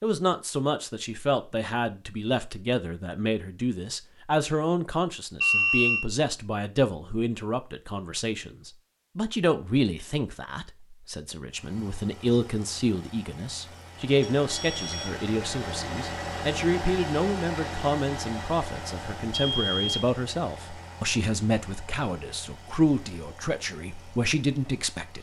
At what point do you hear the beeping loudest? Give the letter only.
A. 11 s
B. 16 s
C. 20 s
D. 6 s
D.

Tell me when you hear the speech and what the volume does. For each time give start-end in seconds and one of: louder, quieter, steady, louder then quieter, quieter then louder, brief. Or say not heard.
0.0-25.1 steady.